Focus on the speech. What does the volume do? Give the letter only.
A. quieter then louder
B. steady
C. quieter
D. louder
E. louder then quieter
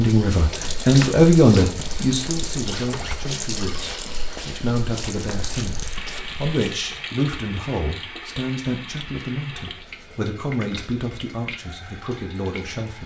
C.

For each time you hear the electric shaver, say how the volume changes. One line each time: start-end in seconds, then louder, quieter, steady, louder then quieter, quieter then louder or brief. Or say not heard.
not heard.